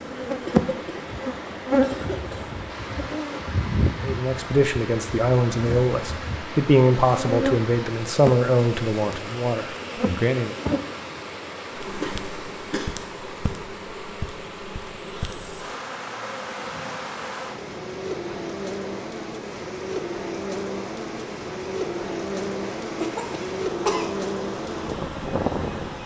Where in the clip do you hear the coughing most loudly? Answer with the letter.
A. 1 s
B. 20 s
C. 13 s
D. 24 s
D.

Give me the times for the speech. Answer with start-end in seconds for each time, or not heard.
4.0-10.6.